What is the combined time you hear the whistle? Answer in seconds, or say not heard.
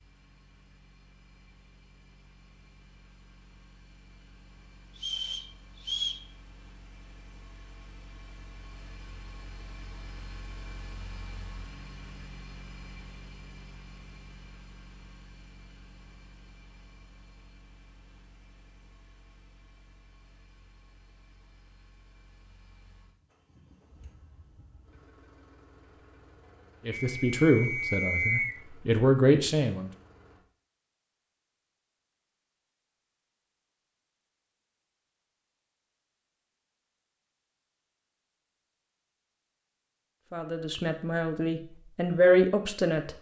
3 s.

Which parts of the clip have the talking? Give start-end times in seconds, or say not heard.
26.9-29.9, 40.3-43.1.